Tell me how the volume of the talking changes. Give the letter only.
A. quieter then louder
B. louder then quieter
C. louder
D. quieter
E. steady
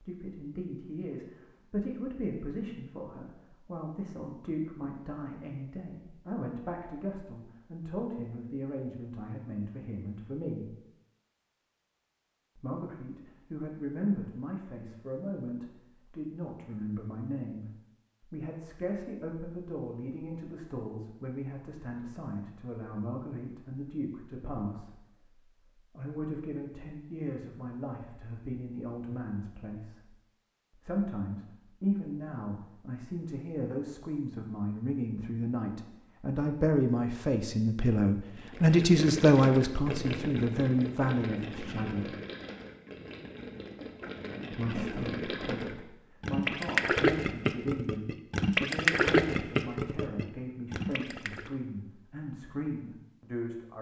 B.